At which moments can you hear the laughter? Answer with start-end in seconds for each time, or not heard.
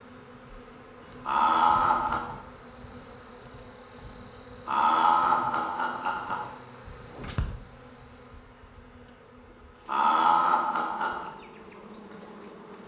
1.2-2.2, 4.7-6.5, 9.8-11.3.